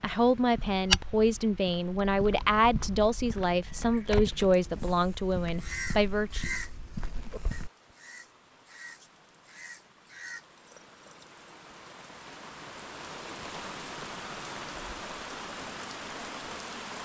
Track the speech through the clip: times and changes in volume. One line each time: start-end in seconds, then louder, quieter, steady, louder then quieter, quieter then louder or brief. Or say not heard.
0.0-6.5 steady.